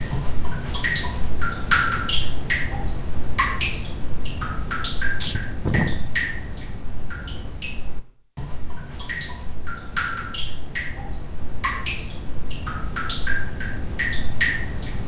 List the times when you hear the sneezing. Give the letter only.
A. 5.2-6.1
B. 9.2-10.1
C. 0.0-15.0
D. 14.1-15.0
A.